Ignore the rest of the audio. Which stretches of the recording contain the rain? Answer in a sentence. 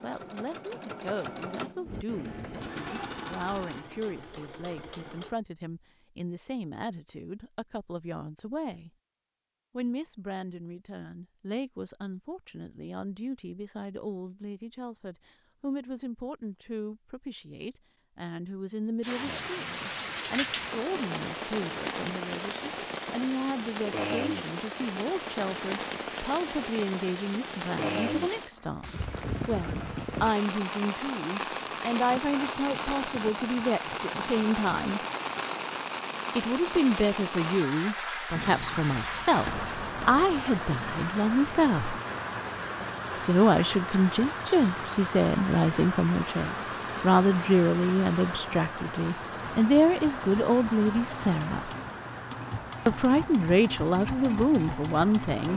You can hear the rain from 19.0 to 55.5 s.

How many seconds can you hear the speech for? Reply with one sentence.
The speech can be heard for 51 seconds in total.